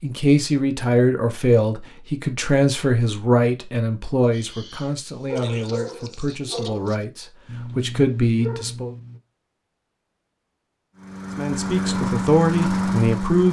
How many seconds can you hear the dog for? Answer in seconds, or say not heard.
5 s.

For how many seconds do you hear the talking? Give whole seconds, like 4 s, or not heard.
11 s.